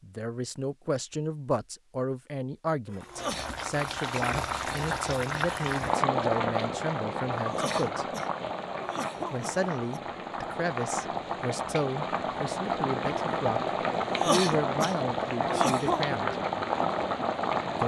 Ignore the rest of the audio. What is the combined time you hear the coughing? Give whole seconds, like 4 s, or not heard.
5 s.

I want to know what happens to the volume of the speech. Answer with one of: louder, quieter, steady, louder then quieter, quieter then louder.
steady.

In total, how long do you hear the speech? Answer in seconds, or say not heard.
15 s.